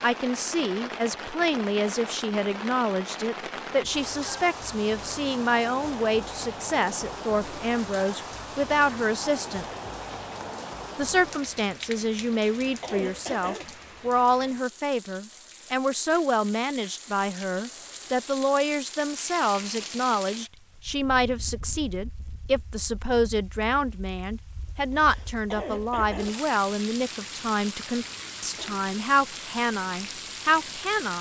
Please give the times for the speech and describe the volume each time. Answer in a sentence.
You can hear the speech from 0.0 to 9.7 s, at a steady volume; and from 10.9 to 31.1 s, at a steady volume.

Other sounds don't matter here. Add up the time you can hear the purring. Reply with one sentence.
You can't hear the purring here.